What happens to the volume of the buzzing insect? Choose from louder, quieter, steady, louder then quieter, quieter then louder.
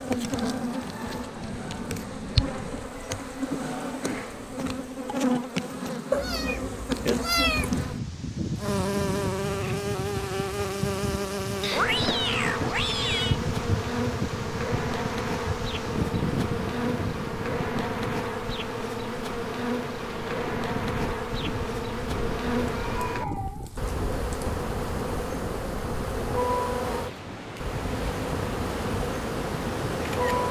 steady.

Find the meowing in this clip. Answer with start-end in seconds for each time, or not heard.
6.1-7.8, 11.6-13.4, 22.6-24.5.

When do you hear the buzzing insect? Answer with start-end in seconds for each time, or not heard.
0.0-30.4.